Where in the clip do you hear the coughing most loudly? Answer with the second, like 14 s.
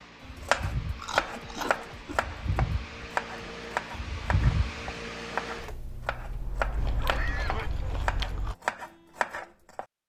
7 s.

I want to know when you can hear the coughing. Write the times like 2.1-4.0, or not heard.
1.1-1.8, 6.8-7.7.